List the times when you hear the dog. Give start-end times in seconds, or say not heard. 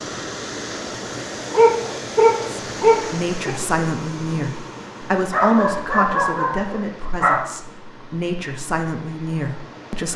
1.5-3.5, 5.3-7.5.